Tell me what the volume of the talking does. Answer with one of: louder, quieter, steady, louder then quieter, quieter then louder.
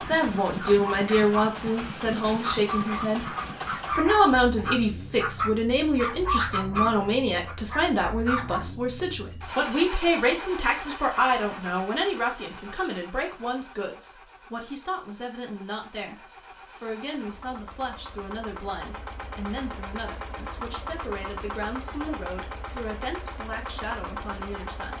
quieter.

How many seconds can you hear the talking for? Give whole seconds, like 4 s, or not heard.
24 s.